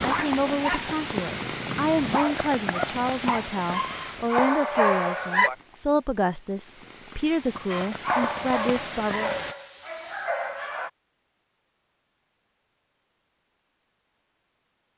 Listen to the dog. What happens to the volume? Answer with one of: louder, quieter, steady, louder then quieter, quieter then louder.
louder then quieter.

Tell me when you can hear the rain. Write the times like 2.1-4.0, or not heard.
0.0-9.6.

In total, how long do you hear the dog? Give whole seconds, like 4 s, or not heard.
9 s.